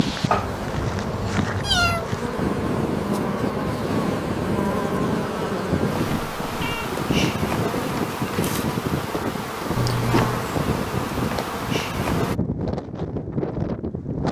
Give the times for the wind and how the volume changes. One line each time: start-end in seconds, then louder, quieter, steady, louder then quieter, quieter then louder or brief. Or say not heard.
0.0-14.2 steady.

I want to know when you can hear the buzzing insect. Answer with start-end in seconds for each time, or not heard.
0.0-12.3.